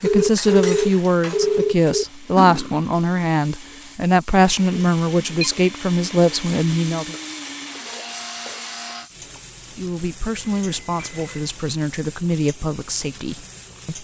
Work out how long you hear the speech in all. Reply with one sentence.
You can hear the speech for 11 seconds altogether.